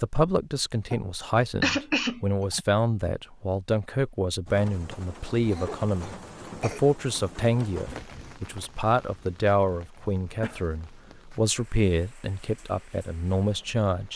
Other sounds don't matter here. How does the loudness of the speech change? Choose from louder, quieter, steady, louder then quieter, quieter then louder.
steady.